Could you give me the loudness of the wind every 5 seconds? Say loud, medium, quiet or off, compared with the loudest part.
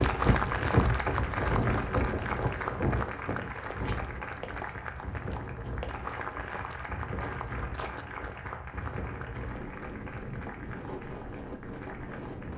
loud, medium, medium.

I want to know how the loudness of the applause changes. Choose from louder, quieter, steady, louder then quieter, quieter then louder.
quieter.